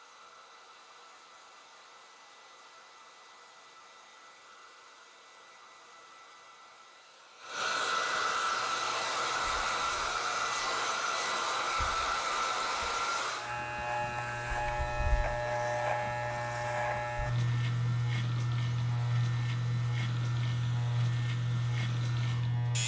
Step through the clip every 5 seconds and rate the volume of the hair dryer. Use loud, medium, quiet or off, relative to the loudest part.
quiet, loud, loud, quiet, quiet.